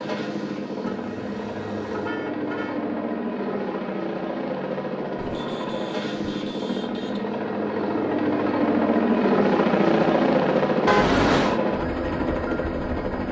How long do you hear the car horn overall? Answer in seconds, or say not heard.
5 s.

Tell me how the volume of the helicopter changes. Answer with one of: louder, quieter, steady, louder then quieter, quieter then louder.
louder.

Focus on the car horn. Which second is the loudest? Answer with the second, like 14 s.
11 s.